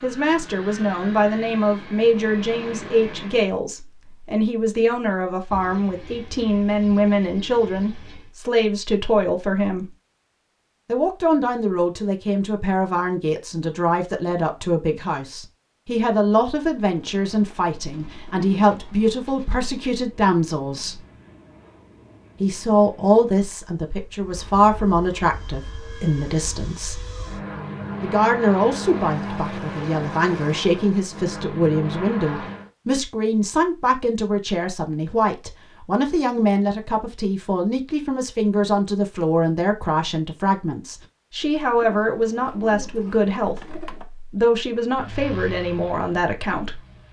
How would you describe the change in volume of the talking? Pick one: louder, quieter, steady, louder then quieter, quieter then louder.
steady.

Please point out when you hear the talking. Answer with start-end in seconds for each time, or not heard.
0.0-9.8, 10.8-21.0, 22.4-27.0, 28.0-46.8.